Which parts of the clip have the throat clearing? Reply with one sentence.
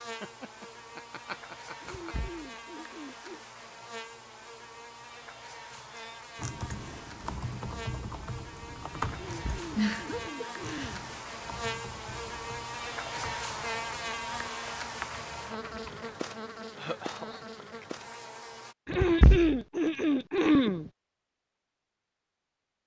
The throat clearing can be heard from 1.8 to 3.4 s, from 9.1 to 11.1 s and from 18.9 to 20.9 s.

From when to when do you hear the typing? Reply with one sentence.
The typing can be heard from 5.8 to 16.1 s.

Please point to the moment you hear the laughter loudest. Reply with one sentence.
The loudest moment of the laughter is at 10 seconds.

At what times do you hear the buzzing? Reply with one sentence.
The buzzing can be heard from 0.0 to 18.8 s.